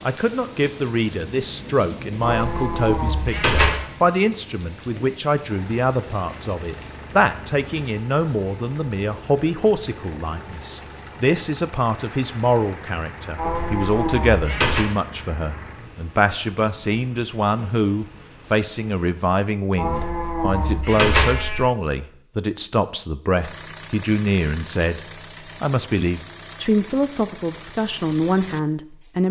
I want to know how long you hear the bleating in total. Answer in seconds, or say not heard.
5 s.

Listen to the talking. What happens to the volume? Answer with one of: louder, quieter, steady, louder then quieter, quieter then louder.
steady.